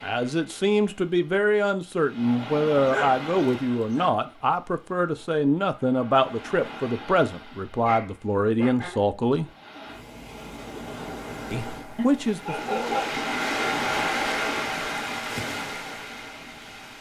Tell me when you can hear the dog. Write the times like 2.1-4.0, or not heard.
2.8-4.1, 7.8-9.1, 11.9-13.2.